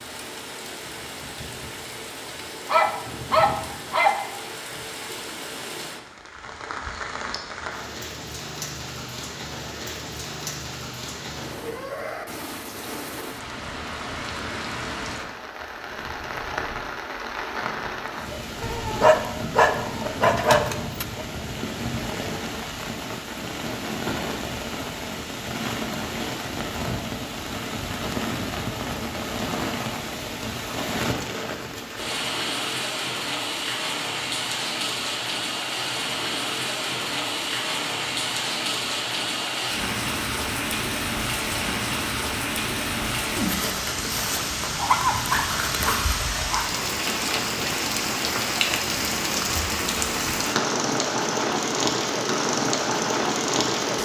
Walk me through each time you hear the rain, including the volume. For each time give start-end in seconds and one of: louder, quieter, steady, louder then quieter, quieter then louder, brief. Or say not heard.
0.0-54.0 louder.